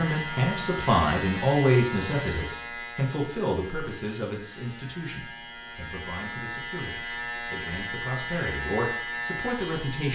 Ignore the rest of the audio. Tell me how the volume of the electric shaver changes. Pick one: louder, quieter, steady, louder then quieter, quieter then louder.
quieter then louder.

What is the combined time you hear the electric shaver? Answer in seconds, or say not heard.
10 s.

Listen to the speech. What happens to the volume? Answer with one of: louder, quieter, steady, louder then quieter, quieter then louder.
quieter then louder.